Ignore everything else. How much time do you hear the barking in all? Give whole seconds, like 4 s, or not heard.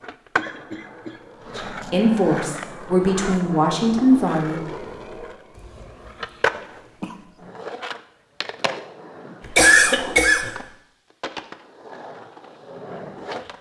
not heard.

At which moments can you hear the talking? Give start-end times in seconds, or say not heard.
1.6-4.6.